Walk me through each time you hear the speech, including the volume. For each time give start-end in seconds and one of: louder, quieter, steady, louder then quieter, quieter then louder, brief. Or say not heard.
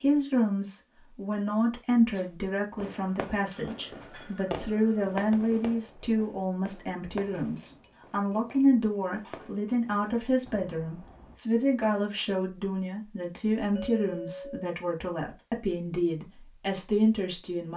0.0-17.7 steady.